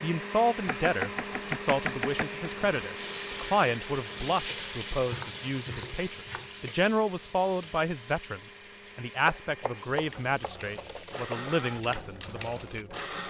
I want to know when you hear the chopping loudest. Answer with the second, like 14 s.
2 s.